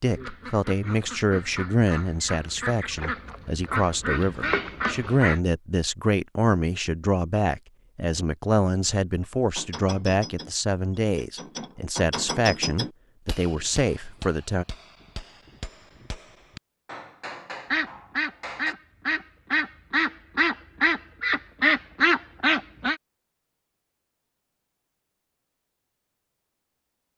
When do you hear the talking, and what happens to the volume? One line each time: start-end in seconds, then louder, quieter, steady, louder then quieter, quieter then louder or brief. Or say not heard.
0.0-14.7 steady.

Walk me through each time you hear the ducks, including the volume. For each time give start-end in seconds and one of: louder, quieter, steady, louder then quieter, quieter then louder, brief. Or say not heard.
0.1-5.4 louder
17.7-22.9 louder.